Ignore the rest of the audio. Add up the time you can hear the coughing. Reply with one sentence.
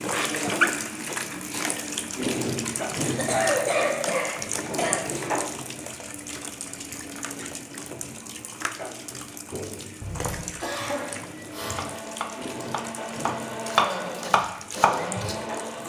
The coughing can be heard for 4 seconds in total.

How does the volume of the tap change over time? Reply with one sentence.
The loudness of the tap goes down.